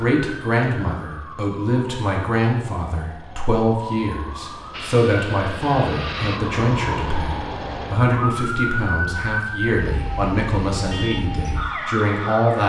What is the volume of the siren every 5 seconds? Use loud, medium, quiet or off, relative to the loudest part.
medium, loud, loud.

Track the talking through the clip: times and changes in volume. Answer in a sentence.
The talking can be heard from 0.0 to 12.6 s, at a steady volume.